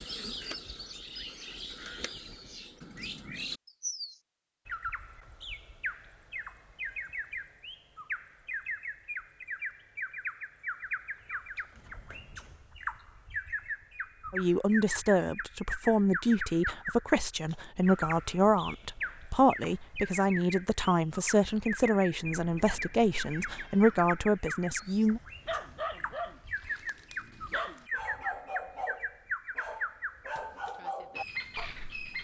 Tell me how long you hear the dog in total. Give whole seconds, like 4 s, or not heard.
7 s.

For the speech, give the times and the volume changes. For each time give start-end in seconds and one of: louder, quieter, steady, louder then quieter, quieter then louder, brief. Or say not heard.
14.3-25.2 steady.